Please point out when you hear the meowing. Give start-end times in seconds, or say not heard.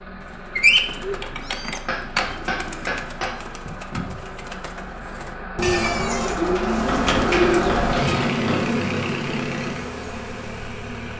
1.2-1.9, 5.6-6.4.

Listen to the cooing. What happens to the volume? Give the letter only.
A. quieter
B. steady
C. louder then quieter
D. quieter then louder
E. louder
D.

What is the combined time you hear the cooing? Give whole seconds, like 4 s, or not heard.
8 s.